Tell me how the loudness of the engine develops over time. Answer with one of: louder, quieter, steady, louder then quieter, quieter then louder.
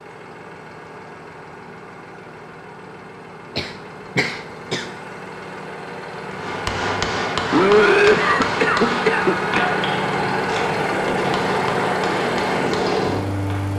louder.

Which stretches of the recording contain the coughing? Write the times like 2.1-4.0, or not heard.
3.5-4.8, 7.5-9.7.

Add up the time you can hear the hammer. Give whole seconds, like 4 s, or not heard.
7 s.